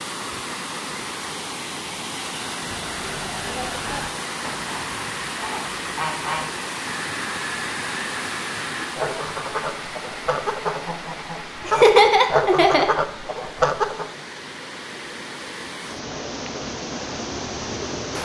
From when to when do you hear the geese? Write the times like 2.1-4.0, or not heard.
2.6-14.1.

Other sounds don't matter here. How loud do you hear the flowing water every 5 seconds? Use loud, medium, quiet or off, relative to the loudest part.
loud, loud, medium, loud.